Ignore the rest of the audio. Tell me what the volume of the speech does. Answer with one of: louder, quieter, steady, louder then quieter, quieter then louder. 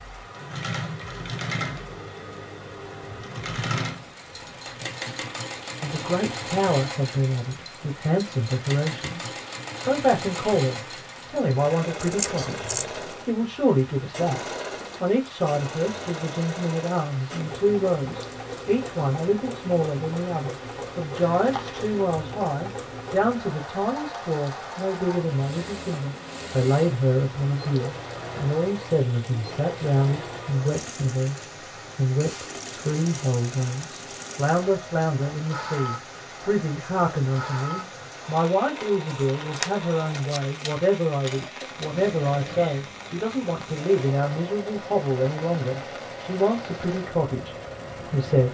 steady.